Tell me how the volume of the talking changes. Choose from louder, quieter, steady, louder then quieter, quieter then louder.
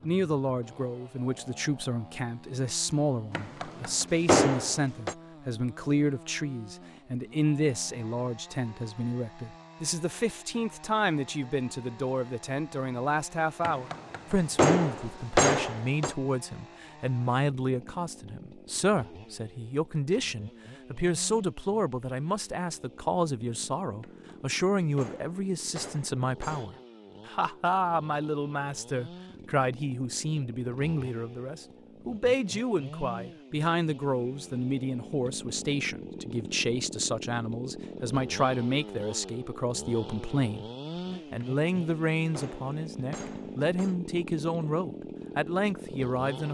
steady.